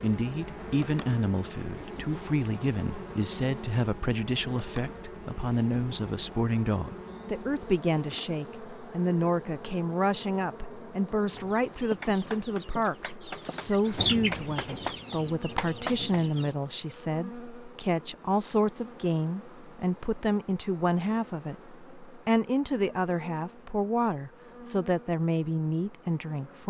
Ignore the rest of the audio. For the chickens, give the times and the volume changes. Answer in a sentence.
The chickens can be heard from 11.3 to 16.5 s, getting louder then quieter.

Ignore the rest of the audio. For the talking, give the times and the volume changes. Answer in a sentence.
You can hear the talking from 0.0 to 26.6 s, at a steady volume.